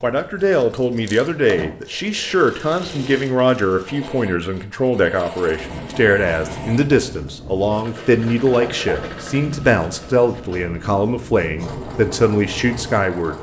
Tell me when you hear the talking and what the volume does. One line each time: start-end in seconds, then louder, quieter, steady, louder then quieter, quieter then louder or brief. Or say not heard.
0.0-13.3 steady.